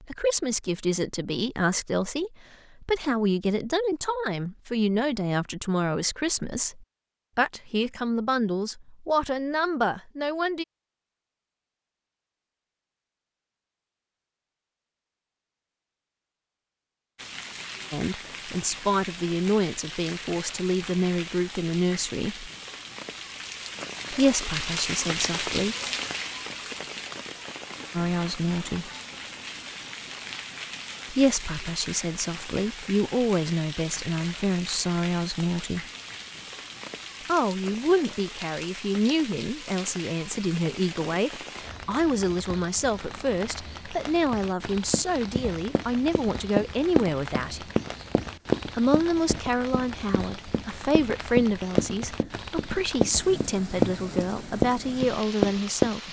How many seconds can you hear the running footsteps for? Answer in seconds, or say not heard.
11 s.